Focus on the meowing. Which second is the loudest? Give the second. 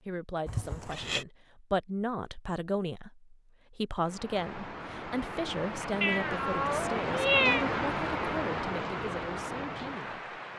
7 s.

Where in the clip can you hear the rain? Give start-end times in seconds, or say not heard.
4.0-10.5.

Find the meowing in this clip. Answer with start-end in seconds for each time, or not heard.
0.5-1.2, 6.0-7.7.